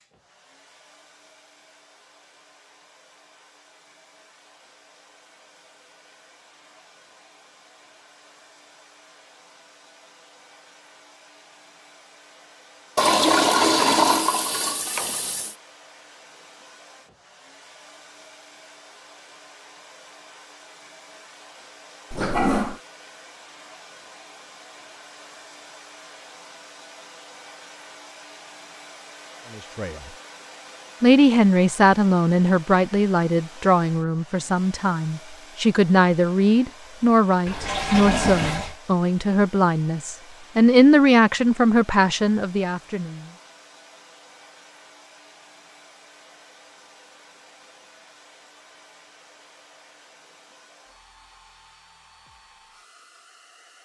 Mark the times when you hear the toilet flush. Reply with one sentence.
You can hear the toilet flush from 12.9 to 15.6 s, from 22.1 to 22.8 s and from 37.5 to 38.8 s.